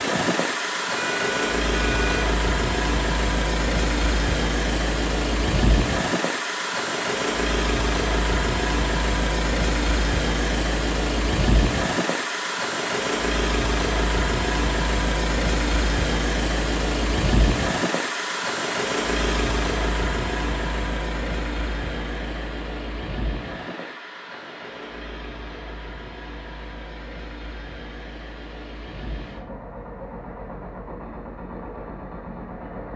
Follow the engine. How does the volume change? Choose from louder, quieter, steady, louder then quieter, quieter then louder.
quieter.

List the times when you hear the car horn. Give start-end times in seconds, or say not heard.
0.9-2.3.